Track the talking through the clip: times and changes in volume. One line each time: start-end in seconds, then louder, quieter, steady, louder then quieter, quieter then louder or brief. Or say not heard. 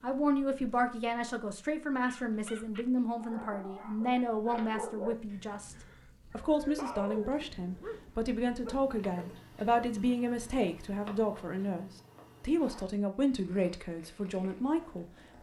0.0-15.3 steady.